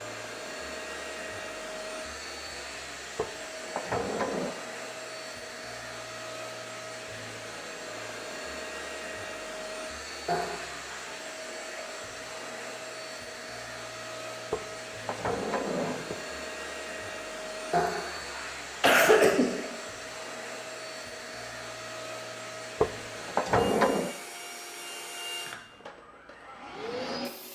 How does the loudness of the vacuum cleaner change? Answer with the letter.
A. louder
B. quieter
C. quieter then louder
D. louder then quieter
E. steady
E.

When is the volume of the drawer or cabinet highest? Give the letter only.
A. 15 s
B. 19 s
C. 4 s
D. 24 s
D.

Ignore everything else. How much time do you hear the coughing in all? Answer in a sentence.
You can hear the coughing for 3 seconds altogether.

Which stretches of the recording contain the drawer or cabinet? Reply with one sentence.
You can hear the drawer or cabinet from 3.1 to 4.5 s, from 14.5 to 16.1 s and from 22.8 to 24.1 s.